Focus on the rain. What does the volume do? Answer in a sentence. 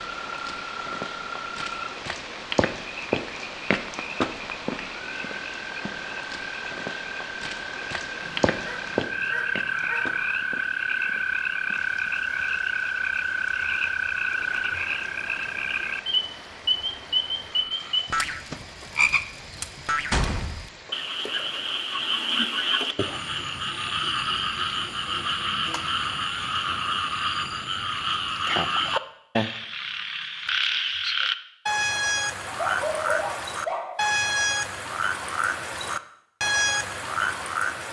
The volume of the rain goes down.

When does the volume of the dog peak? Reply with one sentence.
The volume of the dog peaks at 33 seconds.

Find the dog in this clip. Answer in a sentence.
The dog can be heard from 8.2 to 10.2 s and from 32.5 to 34.1 s.